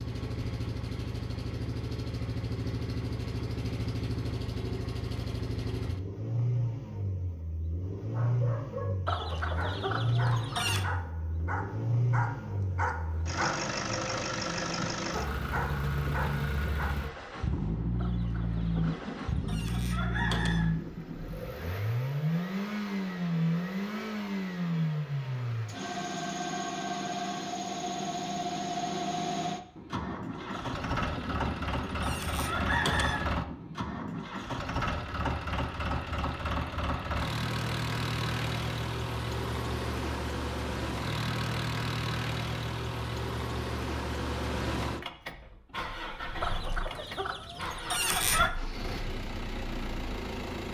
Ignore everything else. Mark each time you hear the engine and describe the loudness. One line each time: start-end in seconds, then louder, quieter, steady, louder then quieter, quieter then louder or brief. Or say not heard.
0.0-50.7 steady.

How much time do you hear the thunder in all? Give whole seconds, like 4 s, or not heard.
9 s.